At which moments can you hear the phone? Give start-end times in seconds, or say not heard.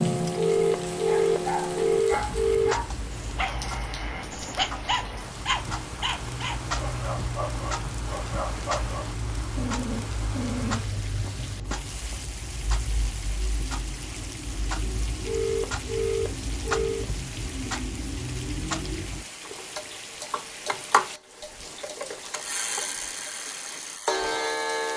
0.3-2.8, 15.2-17.1.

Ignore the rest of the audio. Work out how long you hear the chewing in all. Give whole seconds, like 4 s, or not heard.
not heard.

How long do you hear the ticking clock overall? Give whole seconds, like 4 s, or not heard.
25 s.